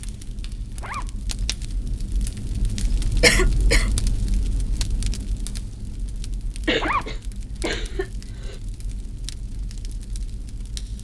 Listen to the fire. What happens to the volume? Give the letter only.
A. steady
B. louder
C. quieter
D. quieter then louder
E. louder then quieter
E.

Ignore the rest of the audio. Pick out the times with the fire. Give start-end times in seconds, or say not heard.
0.0-11.0.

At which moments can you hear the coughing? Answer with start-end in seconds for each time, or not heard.
3.2-3.9, 6.7-8.6.